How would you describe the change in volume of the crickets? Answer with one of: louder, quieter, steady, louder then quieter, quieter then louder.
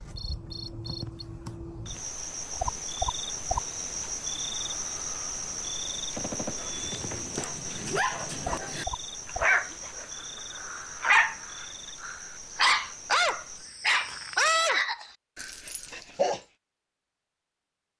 quieter.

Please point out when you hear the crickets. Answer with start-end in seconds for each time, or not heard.
0.0-14.6.